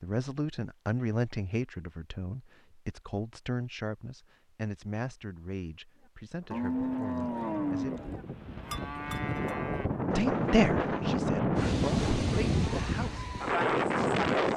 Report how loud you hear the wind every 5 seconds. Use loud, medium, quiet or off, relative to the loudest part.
off, medium, loud.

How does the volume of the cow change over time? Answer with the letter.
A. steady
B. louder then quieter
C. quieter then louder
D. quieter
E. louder
D.